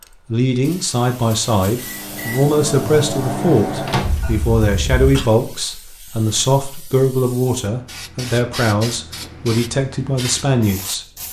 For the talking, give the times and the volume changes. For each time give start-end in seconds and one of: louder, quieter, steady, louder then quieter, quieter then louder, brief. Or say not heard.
0.3-11.1 steady.